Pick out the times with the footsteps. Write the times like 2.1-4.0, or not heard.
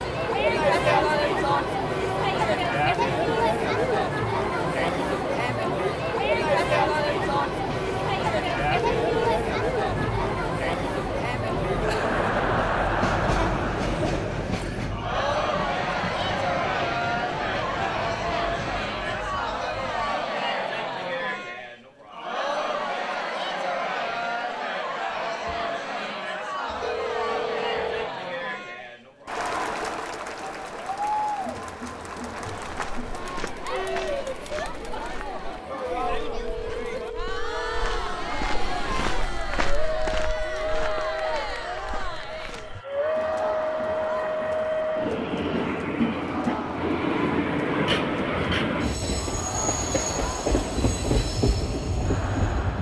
32.5-42.9.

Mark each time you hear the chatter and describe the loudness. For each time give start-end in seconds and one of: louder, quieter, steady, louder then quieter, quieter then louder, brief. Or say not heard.
0.0-52.7 quieter.